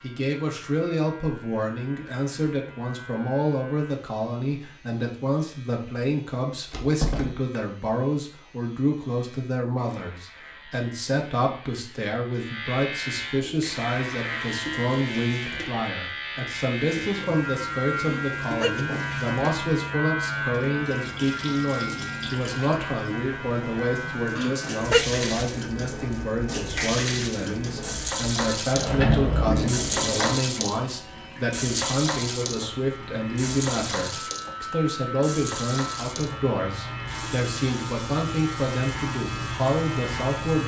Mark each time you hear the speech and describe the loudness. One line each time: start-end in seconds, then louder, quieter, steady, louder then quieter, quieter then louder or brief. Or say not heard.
0.0-40.6 steady.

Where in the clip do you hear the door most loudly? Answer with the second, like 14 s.
29 s.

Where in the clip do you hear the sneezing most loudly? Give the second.
25 s.